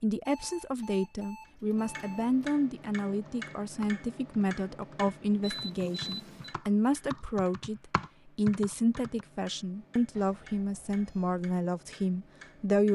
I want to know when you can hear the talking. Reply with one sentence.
You can hear the talking from 0.0 to 12.8 s.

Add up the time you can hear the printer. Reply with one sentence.
You can't hear the printer here.